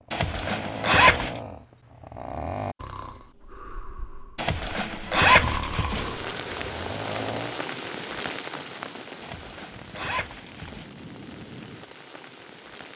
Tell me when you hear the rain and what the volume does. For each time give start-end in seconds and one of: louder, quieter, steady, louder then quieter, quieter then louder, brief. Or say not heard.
5.9-12.9 quieter.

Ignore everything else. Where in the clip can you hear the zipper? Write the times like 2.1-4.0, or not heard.
0.1-1.4, 4.3-6.0, 9.2-10.9.